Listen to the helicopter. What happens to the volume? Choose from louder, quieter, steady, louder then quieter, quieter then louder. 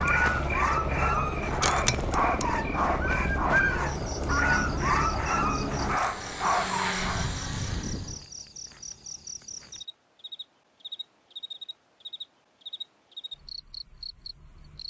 steady.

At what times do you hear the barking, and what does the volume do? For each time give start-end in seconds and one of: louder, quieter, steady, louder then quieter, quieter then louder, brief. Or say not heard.
0.0-7.2 steady.